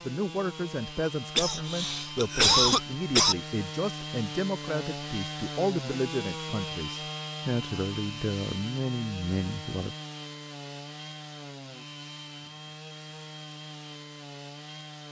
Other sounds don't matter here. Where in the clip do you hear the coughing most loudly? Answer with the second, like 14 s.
3 s.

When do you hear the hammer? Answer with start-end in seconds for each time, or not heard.
not heard.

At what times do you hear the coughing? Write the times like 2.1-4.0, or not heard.
1.4-3.4.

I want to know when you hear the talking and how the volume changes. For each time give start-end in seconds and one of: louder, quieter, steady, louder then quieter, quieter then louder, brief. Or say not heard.
0.0-9.9 steady.